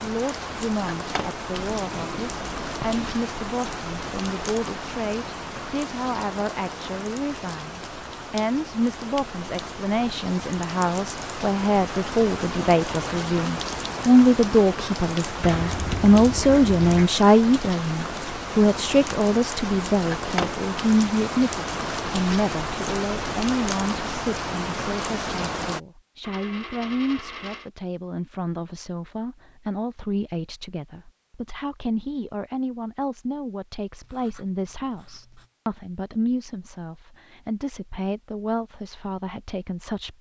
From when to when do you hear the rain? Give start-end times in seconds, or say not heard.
0.0-25.8.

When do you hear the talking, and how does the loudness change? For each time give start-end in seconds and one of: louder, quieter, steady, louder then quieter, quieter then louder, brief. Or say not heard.
0.0-40.1 louder then quieter.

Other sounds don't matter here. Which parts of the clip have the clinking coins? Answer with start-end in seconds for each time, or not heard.
26.2-27.7.